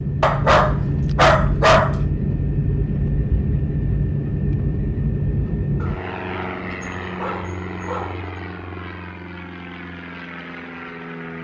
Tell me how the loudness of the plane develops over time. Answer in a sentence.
The loudness of the plane goes down.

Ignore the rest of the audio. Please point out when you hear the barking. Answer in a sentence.
The barking can be heard from 0.2 to 2.0 s and from 5.8 to 8.3 s.